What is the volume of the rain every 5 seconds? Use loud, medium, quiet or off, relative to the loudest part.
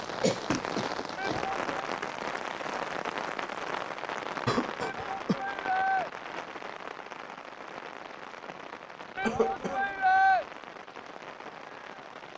loud, medium, medium.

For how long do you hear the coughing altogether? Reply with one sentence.
The coughing can be heard for 3 seconds in total.